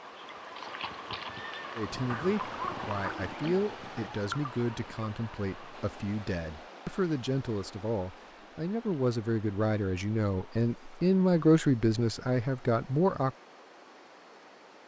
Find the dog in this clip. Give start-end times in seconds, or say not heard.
2.0-3.7.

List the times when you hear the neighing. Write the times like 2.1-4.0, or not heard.
0.6-1.7.